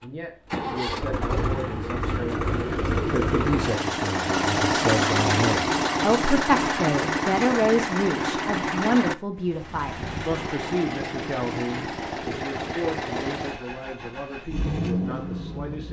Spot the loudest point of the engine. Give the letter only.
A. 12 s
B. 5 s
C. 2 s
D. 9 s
B.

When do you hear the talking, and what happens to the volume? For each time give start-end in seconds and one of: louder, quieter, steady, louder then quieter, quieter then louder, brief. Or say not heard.
0.0-15.8 louder then quieter.